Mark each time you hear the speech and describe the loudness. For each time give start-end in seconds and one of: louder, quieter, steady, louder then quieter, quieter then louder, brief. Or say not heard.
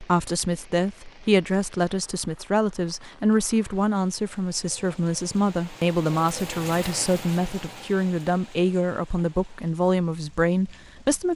0.0-11.3 steady.